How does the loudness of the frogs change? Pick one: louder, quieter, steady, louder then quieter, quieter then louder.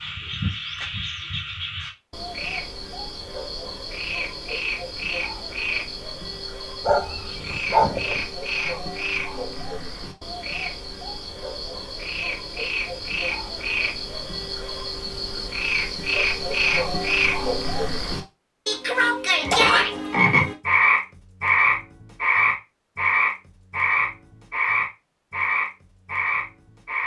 louder.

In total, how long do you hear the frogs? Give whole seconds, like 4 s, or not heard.
27 s.